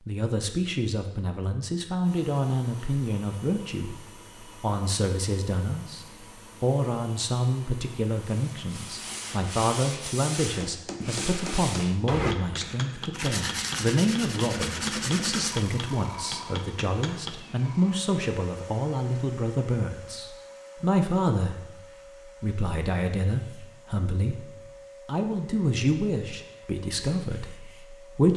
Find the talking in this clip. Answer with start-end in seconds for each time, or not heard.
0.1-21.8, 22.4-28.3.